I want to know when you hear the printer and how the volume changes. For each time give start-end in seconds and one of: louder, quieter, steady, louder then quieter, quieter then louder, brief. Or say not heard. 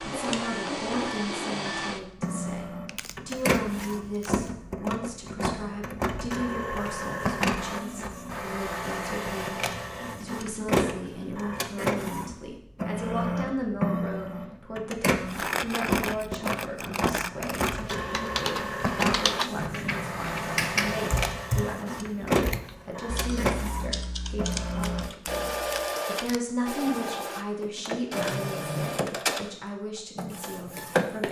0.0-31.2 steady.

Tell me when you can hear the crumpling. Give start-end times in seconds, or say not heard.
2.9-4.4, 15.2-17.9, 24.7-26.4.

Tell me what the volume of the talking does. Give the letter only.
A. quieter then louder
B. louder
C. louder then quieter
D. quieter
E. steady
E.